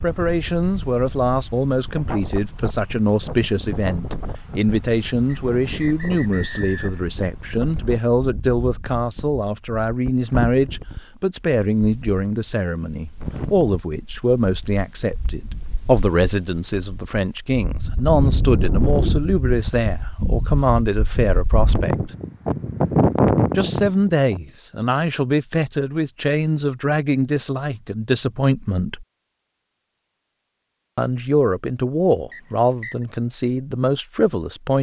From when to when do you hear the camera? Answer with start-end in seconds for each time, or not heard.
not heard.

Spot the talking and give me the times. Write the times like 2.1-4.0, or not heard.
0.0-22.1, 23.6-29.1, 30.9-34.7.